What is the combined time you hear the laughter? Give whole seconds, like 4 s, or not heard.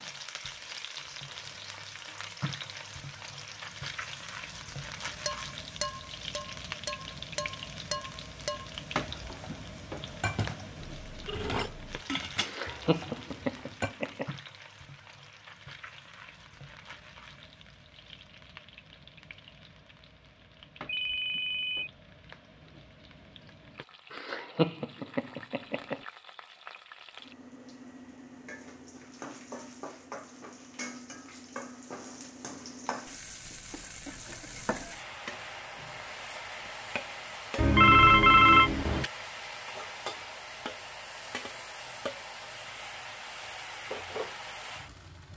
4 s.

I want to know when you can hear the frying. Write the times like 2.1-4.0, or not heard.
0.0-45.3.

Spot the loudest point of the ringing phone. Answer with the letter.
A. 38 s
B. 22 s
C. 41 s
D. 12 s
A.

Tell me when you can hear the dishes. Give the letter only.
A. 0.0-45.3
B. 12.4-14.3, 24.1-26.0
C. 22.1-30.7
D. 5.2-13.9
D.